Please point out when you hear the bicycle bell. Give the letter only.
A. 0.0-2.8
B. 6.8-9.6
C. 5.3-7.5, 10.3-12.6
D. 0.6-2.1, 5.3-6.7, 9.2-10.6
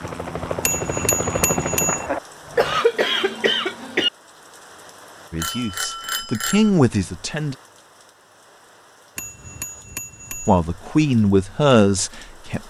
D.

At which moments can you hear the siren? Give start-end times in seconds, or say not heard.
not heard.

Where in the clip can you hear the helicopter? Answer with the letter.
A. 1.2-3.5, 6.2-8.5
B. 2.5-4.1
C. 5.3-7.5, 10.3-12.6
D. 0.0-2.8
D.